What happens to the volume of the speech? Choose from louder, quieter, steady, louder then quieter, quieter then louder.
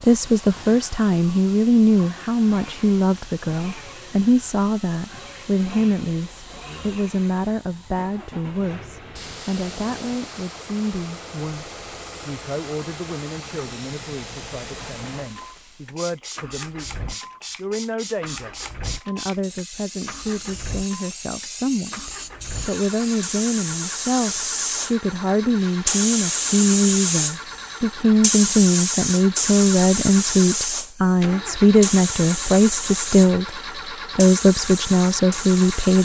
quieter then louder.